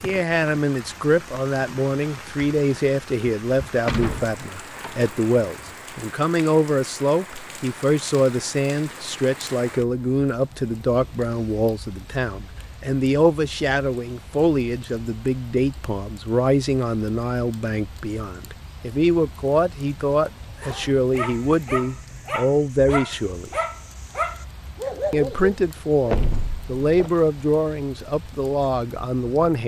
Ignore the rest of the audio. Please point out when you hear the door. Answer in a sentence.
You can hear the door from 3.9 to 5.2 s and from 26.1 to 27.1 s.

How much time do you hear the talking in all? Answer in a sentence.
The talking can be heard for 28 seconds in total.